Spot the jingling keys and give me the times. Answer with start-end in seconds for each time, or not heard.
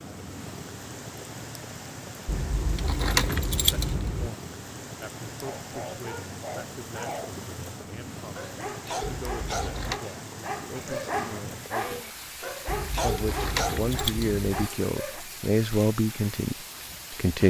2.2-4.3, 9.2-10.0, 12.7-14.7.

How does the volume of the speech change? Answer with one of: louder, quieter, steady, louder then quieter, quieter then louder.
louder.